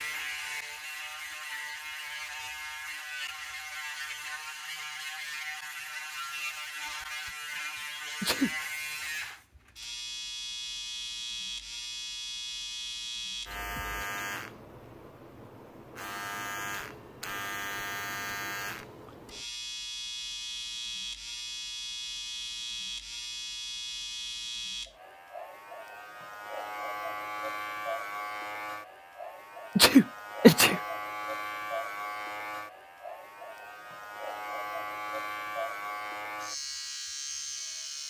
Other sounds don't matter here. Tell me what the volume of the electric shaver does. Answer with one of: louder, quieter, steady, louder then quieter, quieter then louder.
steady.